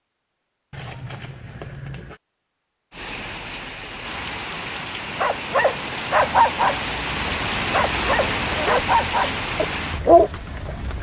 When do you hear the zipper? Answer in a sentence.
The zipper can be heard from 0.7 to 2.2 s and from 8.2 to 8.8 s.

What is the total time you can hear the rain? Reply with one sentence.
The rain can be heard for 8 seconds in total.